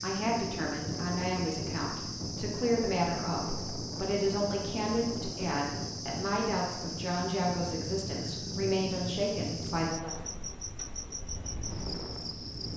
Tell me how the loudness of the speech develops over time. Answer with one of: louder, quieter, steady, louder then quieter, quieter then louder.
steady.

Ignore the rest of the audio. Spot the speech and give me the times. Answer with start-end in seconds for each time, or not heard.
0.0-10.2.